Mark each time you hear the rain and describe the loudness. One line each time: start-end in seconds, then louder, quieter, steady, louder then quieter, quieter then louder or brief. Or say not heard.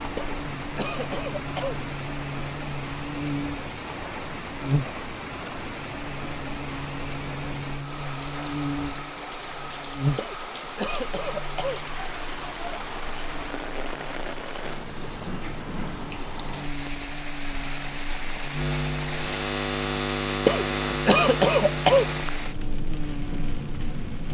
0.0-24.2 steady.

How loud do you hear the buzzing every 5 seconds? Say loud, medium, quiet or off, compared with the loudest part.
loud, medium, medium, loud, loud.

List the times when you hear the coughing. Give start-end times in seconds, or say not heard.
0.1-1.8, 10.2-11.8, 20.4-22.1.